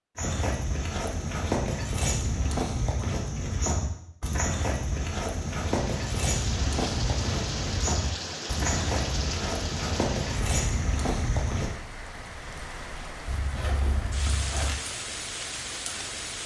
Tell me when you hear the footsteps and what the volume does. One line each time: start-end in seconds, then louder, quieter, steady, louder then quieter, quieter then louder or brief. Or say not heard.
0.1-11.8 steady.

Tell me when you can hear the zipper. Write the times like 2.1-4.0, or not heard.
13.2-14.8.